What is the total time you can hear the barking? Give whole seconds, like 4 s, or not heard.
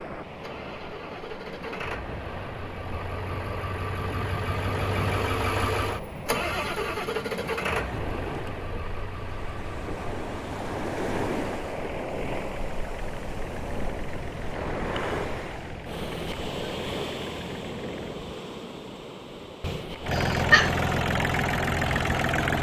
not heard.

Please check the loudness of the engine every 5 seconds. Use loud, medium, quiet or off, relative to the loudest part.
medium, medium, quiet, quiet, loud.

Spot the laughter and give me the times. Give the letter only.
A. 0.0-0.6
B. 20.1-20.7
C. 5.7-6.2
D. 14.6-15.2
B.